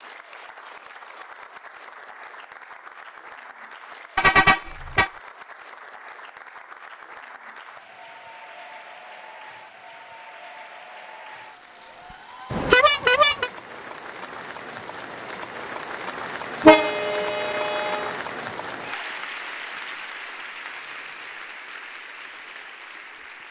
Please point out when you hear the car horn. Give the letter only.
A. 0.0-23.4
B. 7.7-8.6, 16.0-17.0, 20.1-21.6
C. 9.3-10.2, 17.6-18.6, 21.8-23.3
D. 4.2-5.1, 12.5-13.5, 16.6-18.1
D.